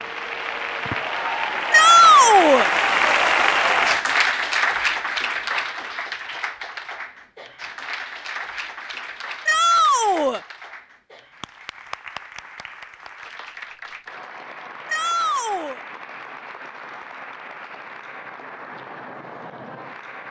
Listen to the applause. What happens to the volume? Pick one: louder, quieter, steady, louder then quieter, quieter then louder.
quieter.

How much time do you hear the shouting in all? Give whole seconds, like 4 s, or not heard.
3 s.